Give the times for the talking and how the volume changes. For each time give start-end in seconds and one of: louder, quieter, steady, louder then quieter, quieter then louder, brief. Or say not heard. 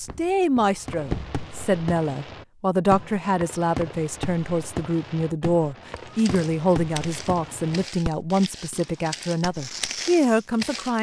0.0-10.9 steady.